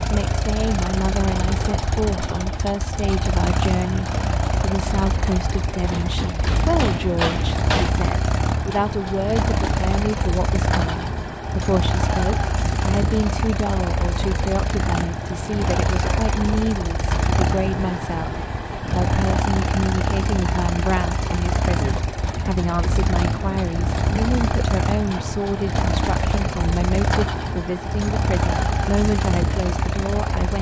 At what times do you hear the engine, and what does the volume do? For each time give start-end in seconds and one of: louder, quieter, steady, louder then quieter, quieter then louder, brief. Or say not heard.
0.0-30.5 steady.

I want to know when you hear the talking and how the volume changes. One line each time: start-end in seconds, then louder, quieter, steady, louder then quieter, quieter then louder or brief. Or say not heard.
0.0-30.5 steady.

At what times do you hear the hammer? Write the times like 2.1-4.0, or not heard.
5.9-7.9.